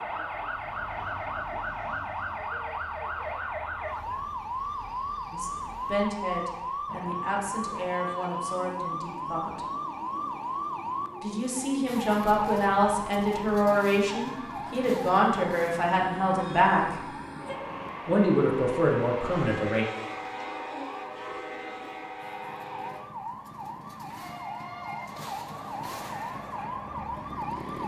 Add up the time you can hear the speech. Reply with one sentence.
You can hear the speech for 12 seconds altogether.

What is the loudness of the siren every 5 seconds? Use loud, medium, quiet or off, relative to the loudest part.
loud, loud, loud, medium, medium, loud.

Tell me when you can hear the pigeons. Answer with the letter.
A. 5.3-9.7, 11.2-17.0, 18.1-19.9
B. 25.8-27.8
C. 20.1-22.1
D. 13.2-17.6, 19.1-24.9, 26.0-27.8
C.